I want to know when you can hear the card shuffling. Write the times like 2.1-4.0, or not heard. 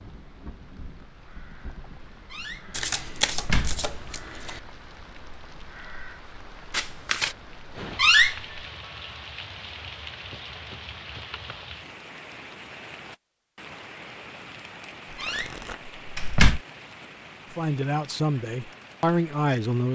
2.7-4.6, 6.7-7.3, 15.1-15.8.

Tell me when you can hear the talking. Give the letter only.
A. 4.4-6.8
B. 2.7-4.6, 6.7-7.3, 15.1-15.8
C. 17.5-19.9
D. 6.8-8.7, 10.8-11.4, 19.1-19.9
C.